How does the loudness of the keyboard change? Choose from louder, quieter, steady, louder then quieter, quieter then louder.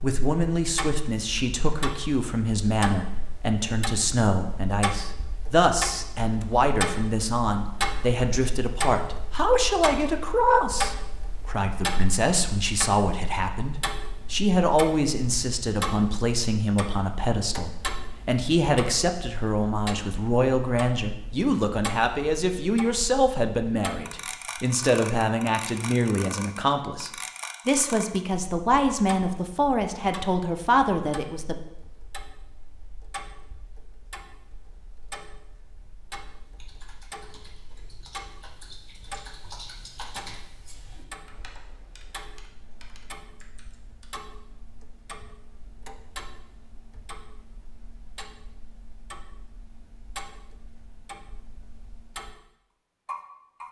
louder then quieter.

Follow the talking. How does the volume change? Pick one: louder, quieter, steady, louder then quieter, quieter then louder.
steady.